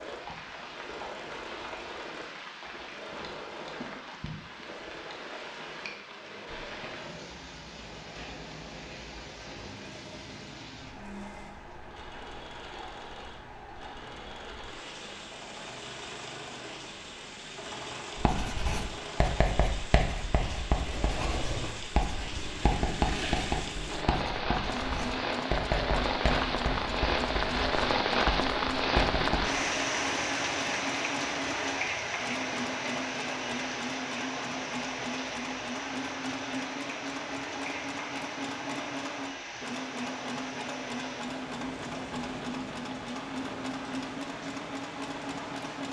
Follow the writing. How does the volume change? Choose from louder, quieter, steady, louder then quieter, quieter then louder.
steady.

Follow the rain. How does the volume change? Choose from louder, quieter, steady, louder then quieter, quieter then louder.
louder then quieter.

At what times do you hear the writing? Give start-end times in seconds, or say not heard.
18.1-29.5.